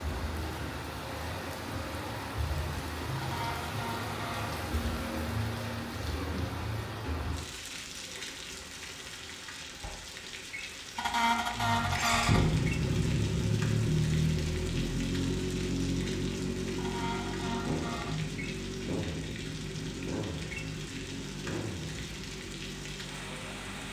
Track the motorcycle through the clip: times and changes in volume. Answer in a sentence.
The motorcycle can be heard from 11.5 to 23.8 s, getting quieter.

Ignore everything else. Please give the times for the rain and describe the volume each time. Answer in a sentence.
The rain can be heard from 0.0 to 23.8 s, getting quieter.